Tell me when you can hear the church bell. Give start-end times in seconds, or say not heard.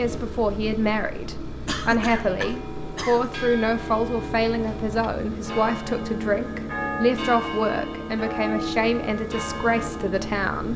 2.1-10.5.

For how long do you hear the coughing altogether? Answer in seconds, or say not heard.
2 s.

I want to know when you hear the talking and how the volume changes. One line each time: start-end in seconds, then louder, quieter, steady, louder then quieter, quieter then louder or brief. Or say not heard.
0.0-10.7 steady.